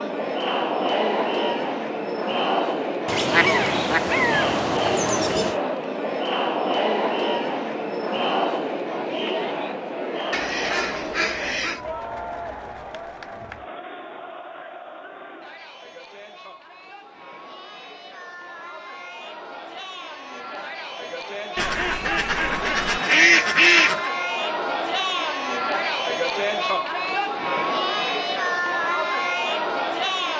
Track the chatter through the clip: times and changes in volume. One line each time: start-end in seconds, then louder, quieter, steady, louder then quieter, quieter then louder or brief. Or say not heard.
0.0-30.3 quieter then louder.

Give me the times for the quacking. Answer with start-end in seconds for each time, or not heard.
3.0-5.5, 10.3-11.8, 21.6-24.1.